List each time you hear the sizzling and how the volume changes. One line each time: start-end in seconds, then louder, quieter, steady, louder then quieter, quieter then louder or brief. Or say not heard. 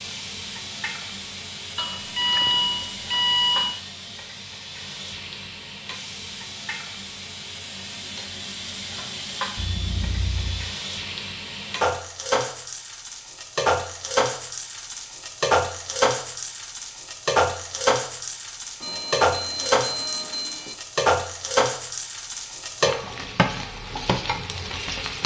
0.0-25.2 louder.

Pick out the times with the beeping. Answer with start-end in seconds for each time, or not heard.
1.8-3.8, 9.6-10.7, 18.8-20.8.